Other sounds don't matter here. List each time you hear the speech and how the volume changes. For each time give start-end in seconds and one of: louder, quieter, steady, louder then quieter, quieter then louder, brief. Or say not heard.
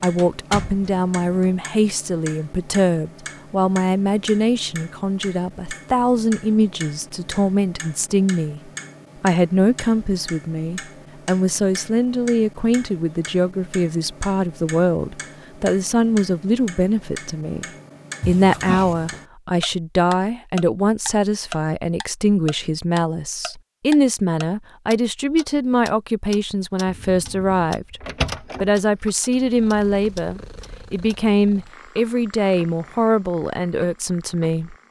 0.0-34.8 steady.